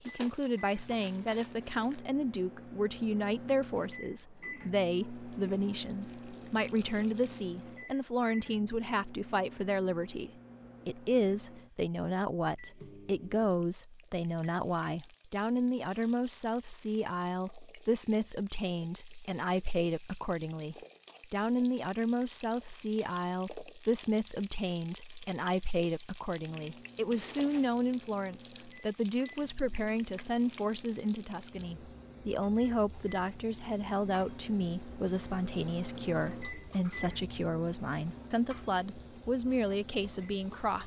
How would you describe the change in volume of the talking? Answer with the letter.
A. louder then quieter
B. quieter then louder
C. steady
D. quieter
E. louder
C.